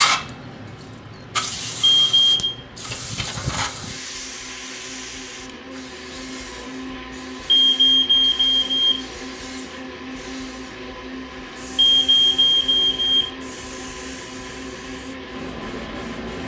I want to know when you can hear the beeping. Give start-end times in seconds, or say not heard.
1.9-2.6, 7.5-9.1, 11.8-13.3.